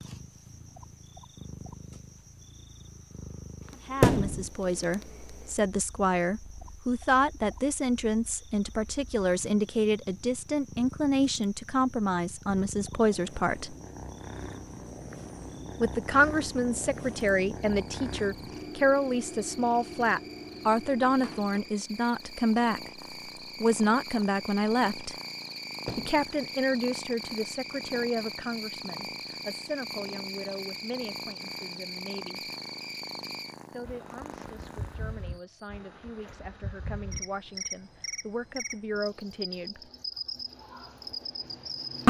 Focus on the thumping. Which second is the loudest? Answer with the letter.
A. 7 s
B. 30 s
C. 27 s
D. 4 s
D.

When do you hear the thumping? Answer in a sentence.
The thumping can be heard from 4.0 to 4.5 s and from 25.9 to 26.3 s.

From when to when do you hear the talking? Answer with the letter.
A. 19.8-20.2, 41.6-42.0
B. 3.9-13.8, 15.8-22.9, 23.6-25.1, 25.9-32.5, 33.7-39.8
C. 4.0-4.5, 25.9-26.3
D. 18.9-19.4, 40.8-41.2
B.